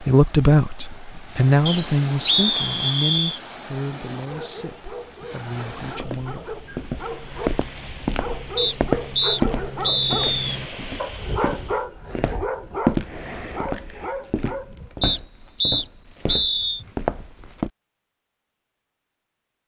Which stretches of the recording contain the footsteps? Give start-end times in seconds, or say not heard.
5.8-17.7.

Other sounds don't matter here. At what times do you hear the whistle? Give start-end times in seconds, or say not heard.
1.6-3.4, 8.6-10.6, 15.0-16.8.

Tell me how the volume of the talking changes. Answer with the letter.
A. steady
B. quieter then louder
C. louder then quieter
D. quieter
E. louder
D.